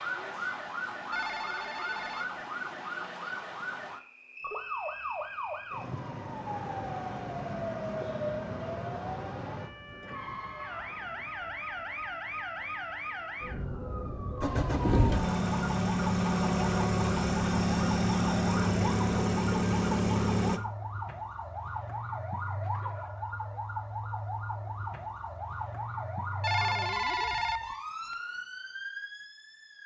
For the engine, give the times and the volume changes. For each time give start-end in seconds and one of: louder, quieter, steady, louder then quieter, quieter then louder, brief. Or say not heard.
14.4-20.6 steady.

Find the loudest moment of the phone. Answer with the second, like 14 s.
27 s.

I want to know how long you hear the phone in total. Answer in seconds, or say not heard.
3 s.